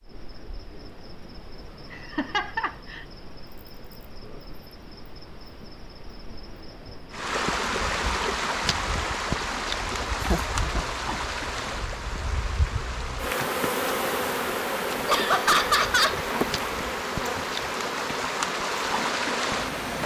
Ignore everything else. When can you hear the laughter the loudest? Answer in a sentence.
The volume of the laughter peaks at 16 seconds.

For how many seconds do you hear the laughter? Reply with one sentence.
You can hear the laughter for 3 seconds altogether.